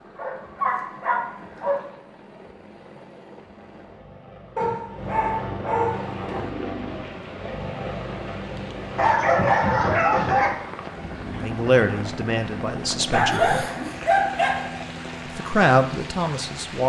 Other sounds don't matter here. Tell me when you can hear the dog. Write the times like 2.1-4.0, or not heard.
0.1-1.9, 4.5-6.5, 8.9-10.5, 13.1-14.8.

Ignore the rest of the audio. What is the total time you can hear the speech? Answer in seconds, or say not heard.
4 s.